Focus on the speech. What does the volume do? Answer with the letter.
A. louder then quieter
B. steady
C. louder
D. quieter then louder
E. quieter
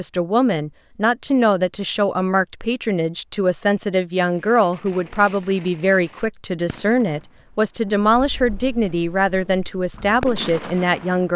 B.